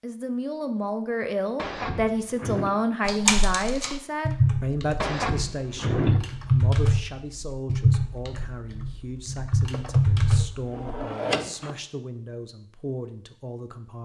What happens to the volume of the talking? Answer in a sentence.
The volume of the talking goes down.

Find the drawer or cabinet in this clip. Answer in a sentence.
The drawer or cabinet can be heard from 1.6 to 2.8 s, from 5.0 to 6.2 s and from 9.7 to 11.8 s.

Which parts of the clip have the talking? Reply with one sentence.
You can hear the talking from 0.0 to 14.0 s.